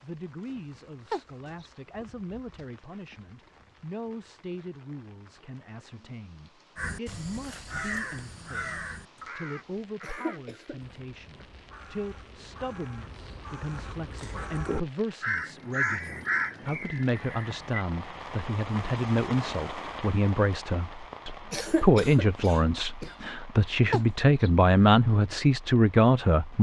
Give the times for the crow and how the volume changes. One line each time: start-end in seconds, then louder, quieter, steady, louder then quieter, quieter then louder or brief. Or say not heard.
6.8-17.9 quieter then louder.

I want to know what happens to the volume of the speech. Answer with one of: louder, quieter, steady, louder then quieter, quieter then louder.
louder.